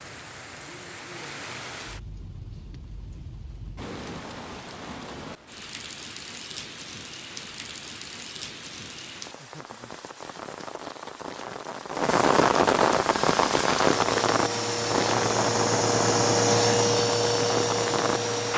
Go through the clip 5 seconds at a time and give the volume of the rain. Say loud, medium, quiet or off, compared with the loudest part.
quiet, quiet, loud, loud.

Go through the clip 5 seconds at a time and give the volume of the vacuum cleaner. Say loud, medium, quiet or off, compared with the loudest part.
off, off, medium, loud.